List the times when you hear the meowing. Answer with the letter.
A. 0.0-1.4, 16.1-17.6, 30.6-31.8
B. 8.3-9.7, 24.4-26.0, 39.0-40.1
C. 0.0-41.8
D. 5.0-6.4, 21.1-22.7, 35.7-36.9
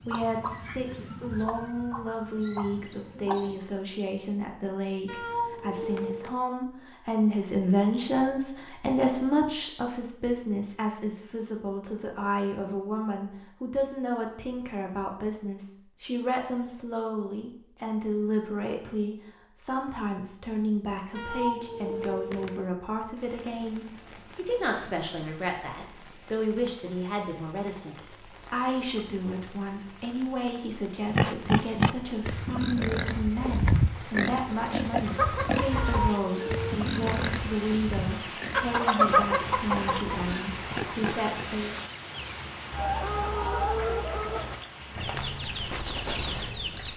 D.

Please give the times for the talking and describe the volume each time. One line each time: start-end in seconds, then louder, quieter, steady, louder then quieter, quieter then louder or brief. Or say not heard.
0.0-41.8 steady.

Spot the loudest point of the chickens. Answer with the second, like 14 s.
39 s.